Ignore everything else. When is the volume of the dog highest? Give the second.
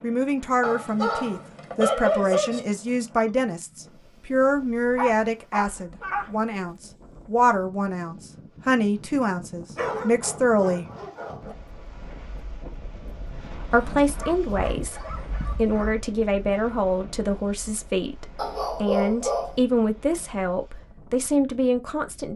2 s.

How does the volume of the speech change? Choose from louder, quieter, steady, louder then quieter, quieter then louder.
steady.